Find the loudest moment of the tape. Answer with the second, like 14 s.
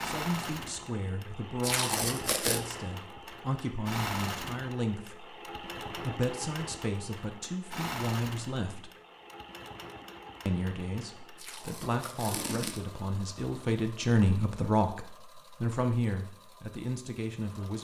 2 s.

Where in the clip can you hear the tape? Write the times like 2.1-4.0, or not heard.
1.6-2.6, 11.3-12.8.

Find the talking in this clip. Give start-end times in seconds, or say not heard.
0.0-8.9, 10.4-17.7.